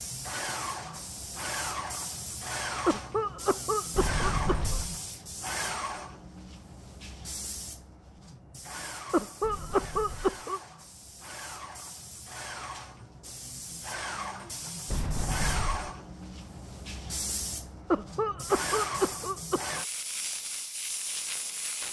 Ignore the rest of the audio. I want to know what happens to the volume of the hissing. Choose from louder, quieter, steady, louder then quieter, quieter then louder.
quieter then louder.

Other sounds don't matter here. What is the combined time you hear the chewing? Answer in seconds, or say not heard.
not heard.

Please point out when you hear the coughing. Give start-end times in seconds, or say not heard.
2.9-4.8, 9.1-10.6, 17.9-19.9.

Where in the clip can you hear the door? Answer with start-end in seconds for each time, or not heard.
3.9-5.0, 9.4-10.4, 14.8-15.9.